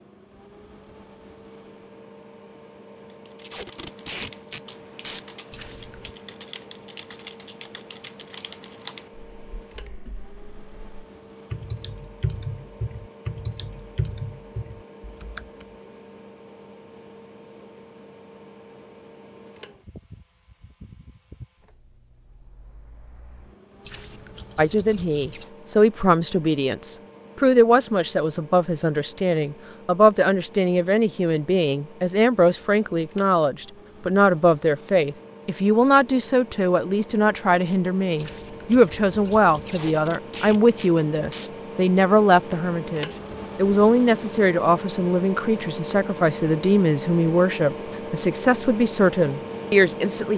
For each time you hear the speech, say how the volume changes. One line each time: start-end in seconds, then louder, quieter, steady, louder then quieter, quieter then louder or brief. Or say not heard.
24.6-50.3 steady.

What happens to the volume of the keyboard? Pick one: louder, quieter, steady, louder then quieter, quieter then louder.
louder.